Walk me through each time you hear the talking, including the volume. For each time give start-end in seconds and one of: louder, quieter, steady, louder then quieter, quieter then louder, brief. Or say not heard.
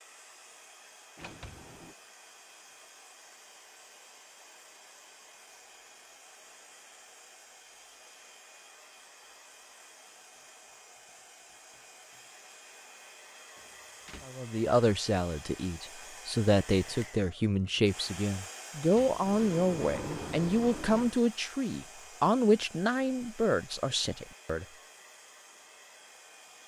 14.2-24.6 steady.